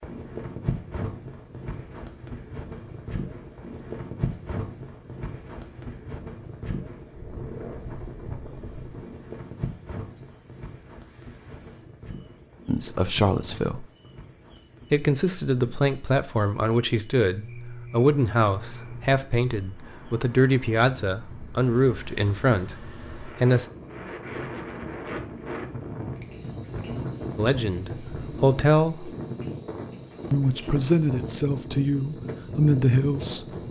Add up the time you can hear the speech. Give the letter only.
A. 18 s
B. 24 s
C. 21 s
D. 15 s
D.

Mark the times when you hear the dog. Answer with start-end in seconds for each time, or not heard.
not heard.